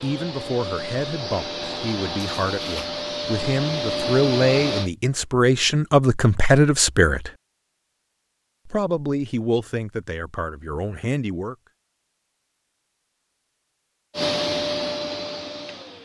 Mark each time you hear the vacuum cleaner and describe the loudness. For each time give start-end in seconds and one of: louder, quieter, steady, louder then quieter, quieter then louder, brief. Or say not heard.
0.0-4.9 louder
14.2-15.9 brief.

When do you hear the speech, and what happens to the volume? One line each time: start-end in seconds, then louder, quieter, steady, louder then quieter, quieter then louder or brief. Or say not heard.
0.0-7.3 louder
8.7-11.6 brief.